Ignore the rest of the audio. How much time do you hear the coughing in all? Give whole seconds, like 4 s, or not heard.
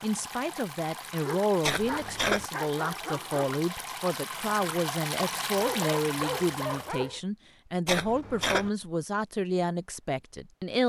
2 s.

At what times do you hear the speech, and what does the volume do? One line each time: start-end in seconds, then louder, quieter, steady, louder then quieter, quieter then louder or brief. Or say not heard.
0.0-10.8 steady.